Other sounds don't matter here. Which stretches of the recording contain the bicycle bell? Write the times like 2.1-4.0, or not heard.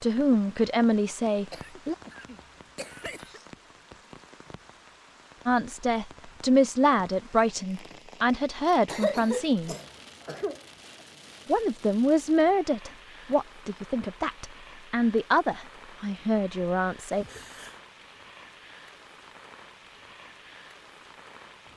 not heard.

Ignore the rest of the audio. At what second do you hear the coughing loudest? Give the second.
9 s.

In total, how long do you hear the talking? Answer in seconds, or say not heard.
12 s.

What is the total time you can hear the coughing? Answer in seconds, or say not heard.
4 s.